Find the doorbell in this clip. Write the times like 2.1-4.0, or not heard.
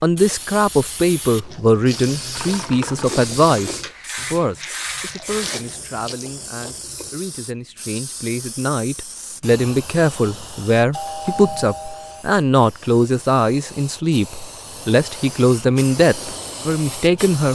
10.9-12.2.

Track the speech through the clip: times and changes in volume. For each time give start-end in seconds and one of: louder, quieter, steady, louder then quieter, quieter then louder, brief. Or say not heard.
0.0-17.4 quieter then louder.